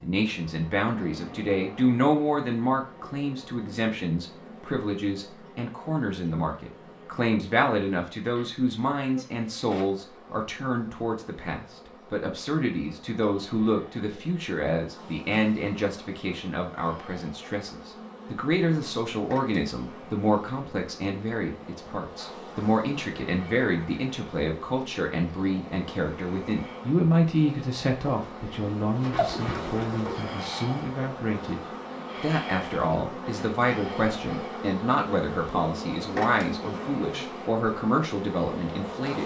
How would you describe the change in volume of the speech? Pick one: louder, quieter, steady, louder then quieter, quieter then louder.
steady.